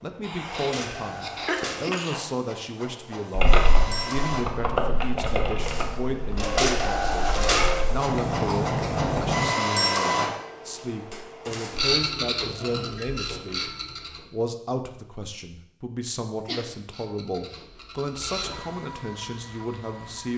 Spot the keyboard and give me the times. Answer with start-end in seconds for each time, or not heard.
3.4-9.5.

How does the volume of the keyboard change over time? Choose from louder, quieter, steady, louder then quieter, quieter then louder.
quieter then louder.